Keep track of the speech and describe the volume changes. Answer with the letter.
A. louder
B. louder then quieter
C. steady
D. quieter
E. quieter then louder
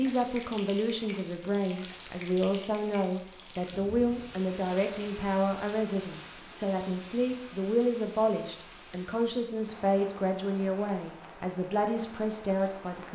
C.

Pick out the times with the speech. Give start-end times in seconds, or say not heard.
0.0-13.1.